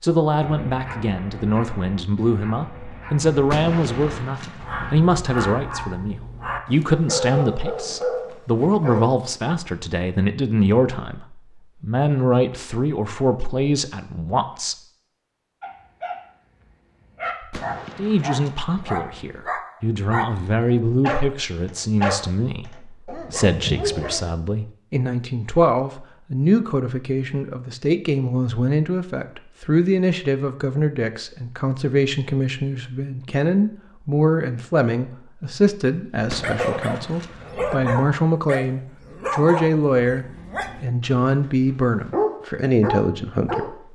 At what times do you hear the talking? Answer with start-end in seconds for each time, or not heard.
0.0-14.8, 17.9-43.9.